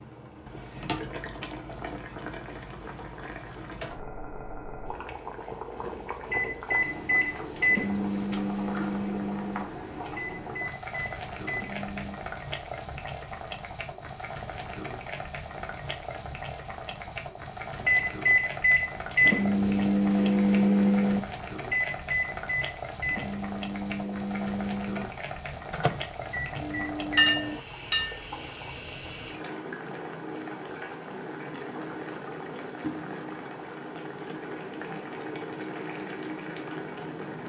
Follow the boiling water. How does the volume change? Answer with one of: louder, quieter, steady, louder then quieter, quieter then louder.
steady.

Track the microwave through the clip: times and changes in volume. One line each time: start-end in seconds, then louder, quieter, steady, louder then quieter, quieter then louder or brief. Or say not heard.
6.2-12.2 quieter then louder
17.8-27.6 quieter.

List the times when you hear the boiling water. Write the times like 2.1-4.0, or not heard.
0.0-37.4.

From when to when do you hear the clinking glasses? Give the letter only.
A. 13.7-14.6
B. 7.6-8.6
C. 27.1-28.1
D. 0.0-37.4
C.